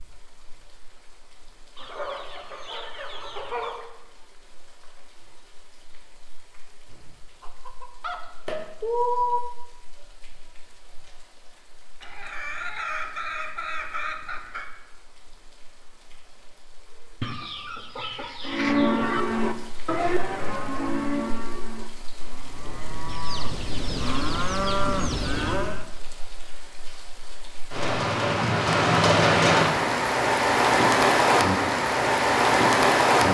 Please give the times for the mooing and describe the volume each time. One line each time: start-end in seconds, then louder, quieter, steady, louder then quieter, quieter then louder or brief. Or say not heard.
18.4-25.9 quieter then louder.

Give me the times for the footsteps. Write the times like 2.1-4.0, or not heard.
not heard.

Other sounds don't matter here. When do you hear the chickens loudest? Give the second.
9 s.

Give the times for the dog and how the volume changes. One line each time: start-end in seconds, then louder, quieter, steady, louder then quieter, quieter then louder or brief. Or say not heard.
not heard.